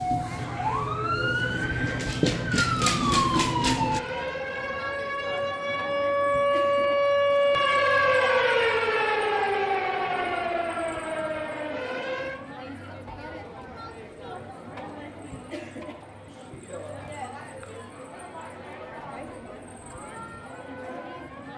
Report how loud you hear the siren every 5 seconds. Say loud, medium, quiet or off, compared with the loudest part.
loud, loud, medium, off, off.